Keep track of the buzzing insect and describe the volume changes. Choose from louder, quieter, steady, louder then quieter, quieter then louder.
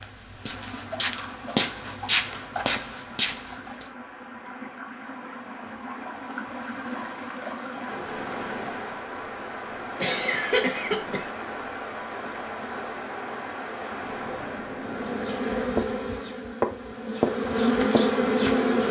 quieter then louder.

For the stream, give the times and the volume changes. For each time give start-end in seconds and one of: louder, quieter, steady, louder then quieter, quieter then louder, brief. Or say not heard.
0.1-15.7 louder.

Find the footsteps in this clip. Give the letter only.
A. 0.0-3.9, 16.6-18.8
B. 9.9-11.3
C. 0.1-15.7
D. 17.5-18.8
A.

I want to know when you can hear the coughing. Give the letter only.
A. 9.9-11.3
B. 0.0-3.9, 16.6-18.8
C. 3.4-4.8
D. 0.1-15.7
A.